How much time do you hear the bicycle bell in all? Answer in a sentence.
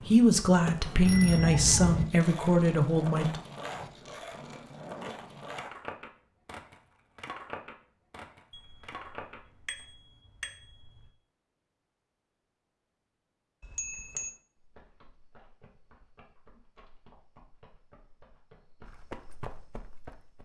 You can hear the bicycle bell for 4 seconds altogether.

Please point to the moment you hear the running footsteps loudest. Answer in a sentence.
The volume of the running footsteps peaks at 19 seconds.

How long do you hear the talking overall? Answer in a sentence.
The talking can be heard for 3 seconds in total.